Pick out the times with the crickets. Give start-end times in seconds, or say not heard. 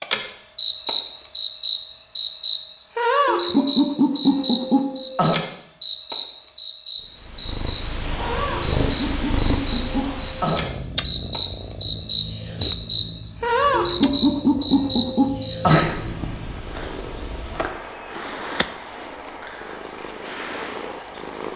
0.0-21.5.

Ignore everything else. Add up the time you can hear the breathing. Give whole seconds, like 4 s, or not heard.
not heard.